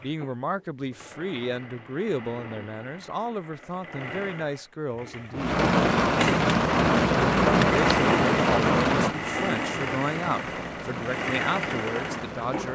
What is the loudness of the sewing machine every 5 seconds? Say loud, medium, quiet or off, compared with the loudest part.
quiet, loud, loud.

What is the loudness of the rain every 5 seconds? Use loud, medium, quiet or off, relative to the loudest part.
off, loud, quiet.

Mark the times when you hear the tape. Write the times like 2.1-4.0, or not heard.
not heard.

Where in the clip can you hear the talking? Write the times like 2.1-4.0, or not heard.
0.0-5.6, 7.7-12.7.